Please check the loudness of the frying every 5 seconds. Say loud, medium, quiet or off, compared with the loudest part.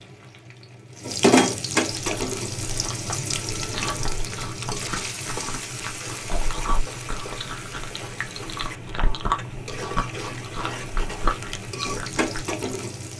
loud, medium, medium.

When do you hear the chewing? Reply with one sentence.
The chewing can be heard from 1.9 to 12.6 s.